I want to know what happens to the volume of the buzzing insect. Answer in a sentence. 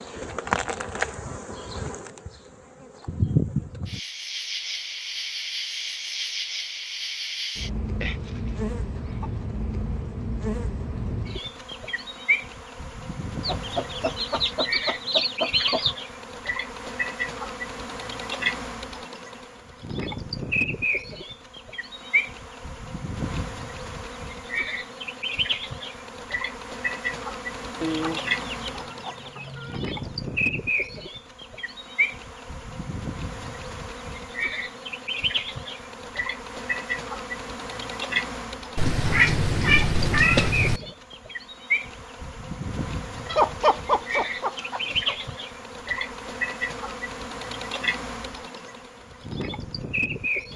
The volume of the buzzing insect stays about the same.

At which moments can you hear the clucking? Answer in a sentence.
You can hear the clucking from 8.0 to 9.3 s, from 13.4 to 15.9 s, from 27.8 to 30.2 s and from 43.2 to 45.1 s.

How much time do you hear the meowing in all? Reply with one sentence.
The meowing can be heard for 2 seconds in total.